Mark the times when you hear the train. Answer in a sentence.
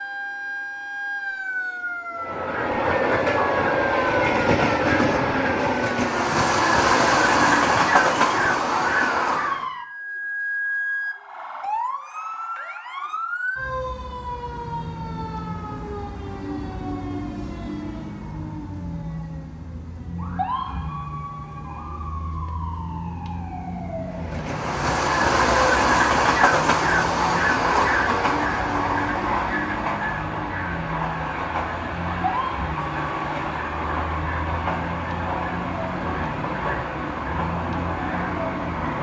The train can be heard from 2.1 to 9.7 s and from 24.1 to 38.9 s.